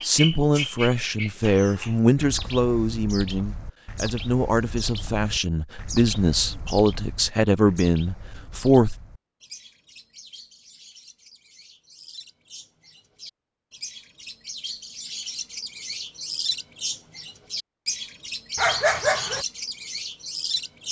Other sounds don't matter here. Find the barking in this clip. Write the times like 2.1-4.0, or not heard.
18.6-19.4.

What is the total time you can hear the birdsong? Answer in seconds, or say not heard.
21 s.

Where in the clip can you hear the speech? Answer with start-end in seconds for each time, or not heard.
0.0-8.9.